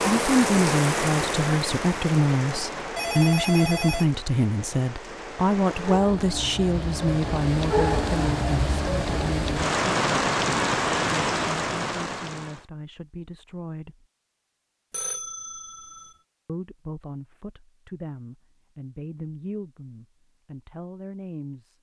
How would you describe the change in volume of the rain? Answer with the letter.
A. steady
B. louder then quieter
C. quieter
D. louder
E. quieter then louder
E.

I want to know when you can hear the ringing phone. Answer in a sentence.
The ringing phone can be heard from 3.0 to 4.2 s and from 14.9 to 16.1 s.